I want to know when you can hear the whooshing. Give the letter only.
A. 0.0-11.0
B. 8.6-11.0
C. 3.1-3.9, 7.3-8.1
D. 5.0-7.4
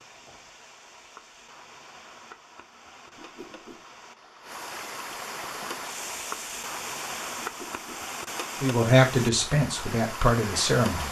C.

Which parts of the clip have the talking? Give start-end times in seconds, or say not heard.
8.6-11.0.